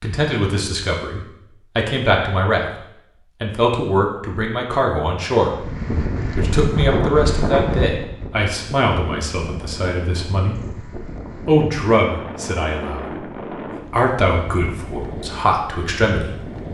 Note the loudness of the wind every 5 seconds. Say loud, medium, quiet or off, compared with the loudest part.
off, loud, medium, medium.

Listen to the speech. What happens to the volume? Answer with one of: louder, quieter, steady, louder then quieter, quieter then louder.
steady.